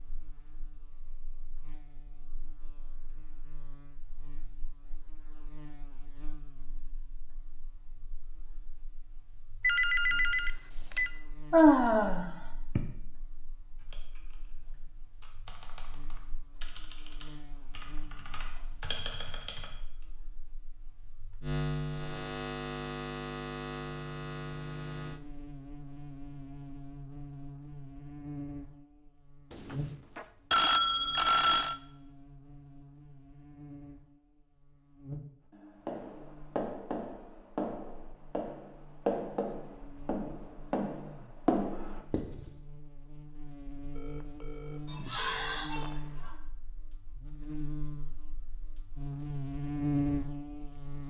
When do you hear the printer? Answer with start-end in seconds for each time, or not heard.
not heard.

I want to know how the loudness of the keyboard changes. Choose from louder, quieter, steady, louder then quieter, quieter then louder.
louder.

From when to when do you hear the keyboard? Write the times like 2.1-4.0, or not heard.
13.8-20.1.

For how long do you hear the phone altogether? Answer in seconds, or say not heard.
6 s.